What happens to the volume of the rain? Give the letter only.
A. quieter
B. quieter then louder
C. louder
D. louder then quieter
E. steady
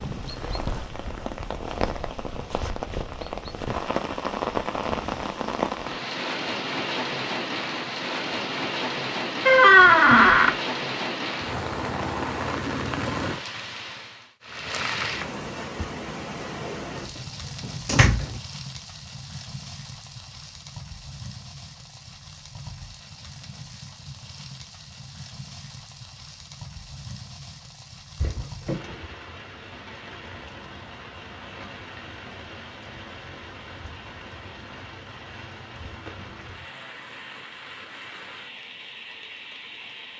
A.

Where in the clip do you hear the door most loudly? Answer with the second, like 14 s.
10 s.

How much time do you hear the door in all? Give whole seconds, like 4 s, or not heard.
3 s.